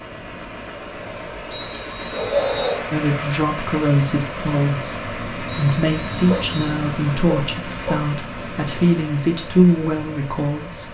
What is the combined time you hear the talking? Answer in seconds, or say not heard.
8 s.